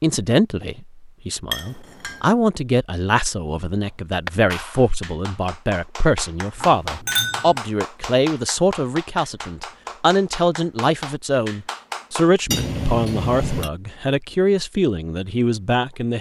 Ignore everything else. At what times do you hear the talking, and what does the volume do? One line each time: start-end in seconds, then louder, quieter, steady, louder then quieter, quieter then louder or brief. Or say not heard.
0.0-16.1 steady.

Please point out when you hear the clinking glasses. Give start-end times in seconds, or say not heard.
1.5-2.2, 6.5-7.5, 12.5-13.7.